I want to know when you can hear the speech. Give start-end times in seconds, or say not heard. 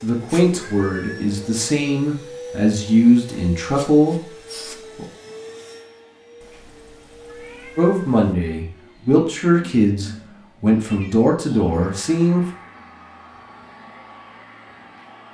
0.0-5.0, 7.8-12.5.